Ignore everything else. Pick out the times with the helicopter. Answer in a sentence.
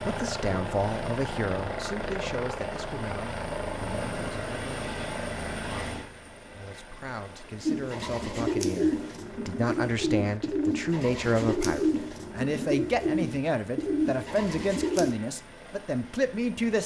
You can hear the helicopter from 0.0 to 16.8 s.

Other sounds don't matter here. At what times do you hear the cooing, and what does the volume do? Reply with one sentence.
You can hear the cooing from 7.7 to 15.2 s, at a steady volume.